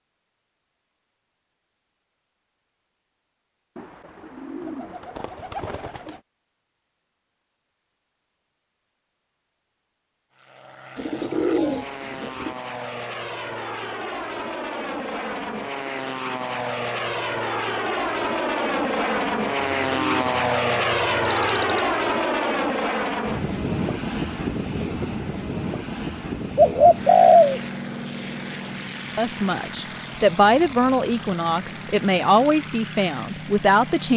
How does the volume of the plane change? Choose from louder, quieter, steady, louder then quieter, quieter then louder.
louder then quieter.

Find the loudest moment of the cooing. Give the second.
27 s.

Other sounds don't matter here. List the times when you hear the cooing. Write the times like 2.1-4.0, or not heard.
3.8-6.2, 10.9-12.6, 19.6-21.9, 26.6-27.6.